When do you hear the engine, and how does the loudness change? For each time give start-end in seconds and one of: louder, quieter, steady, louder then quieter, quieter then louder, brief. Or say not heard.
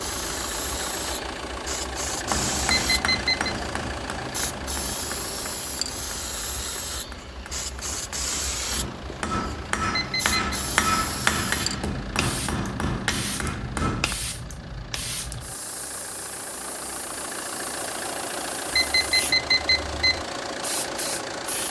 0.0-21.6 quieter then louder.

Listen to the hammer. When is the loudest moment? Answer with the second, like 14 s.
11 s.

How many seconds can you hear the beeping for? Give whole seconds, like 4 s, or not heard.
3 s.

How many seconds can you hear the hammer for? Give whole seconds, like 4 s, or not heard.
12 s.